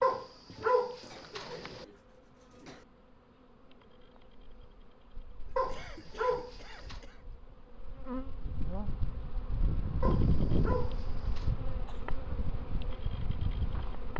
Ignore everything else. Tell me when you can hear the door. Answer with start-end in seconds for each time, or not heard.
not heard.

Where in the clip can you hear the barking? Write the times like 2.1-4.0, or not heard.
0.0-1.9, 5.5-7.0, 10.0-11.5.